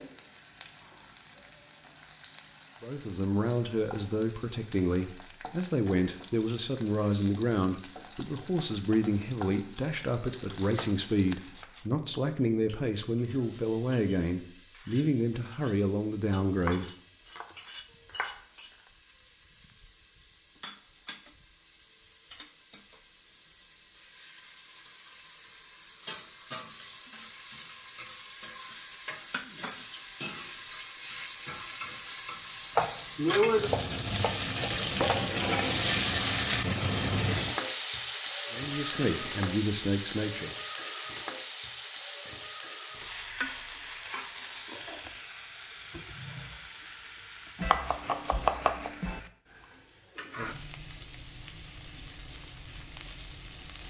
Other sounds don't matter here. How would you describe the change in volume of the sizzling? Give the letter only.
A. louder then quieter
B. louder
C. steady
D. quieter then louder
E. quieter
A.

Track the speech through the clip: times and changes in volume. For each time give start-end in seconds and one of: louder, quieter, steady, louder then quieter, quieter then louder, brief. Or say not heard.
2.8-16.9 steady
38.5-40.5 brief.